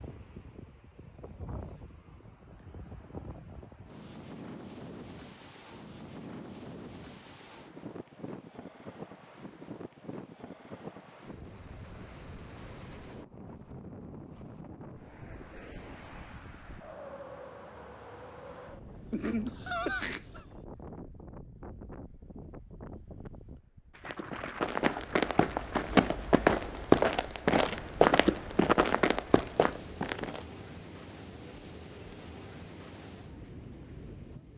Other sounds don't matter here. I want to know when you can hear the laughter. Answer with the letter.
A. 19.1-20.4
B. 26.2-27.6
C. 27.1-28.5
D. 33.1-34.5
A.